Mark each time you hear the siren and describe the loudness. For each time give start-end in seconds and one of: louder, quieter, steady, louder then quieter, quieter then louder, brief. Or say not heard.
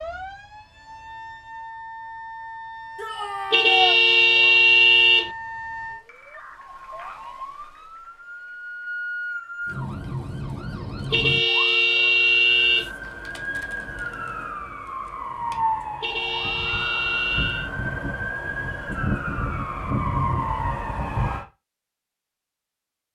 0.0-21.4 louder.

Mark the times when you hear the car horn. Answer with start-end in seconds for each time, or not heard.
3.5-5.3, 11.1-12.9, 16.0-17.7.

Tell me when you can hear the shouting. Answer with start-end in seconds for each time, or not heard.
3.0-4.0.